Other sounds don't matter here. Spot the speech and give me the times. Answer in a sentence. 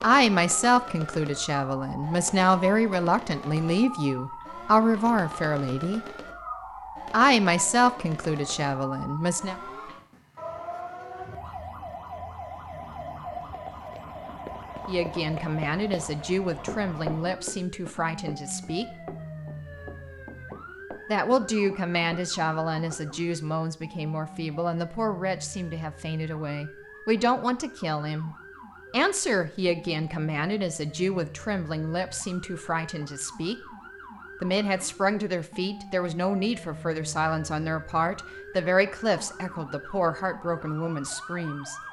You can hear the speech from 0.0 to 6.0 s, from 7.1 to 9.6 s, from 14.8 to 18.9 s, from 21.1 to 33.5 s and from 34.4 to 41.8 s.